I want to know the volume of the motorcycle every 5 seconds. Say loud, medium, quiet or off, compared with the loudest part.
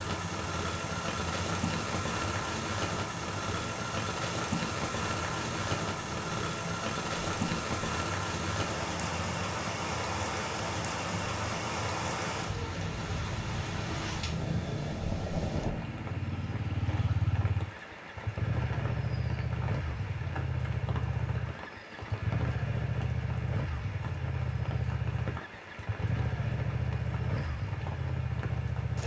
medium, medium, medium, loud, loud, loud.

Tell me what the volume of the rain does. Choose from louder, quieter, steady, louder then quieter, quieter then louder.
quieter.